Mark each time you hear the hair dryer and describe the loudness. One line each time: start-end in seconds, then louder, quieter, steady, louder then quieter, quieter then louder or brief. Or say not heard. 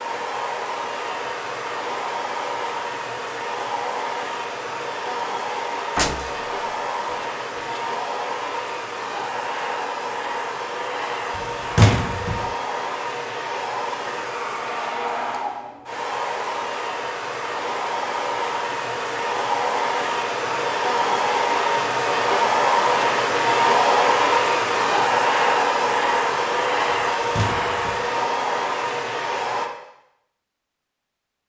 0.0-29.7 louder.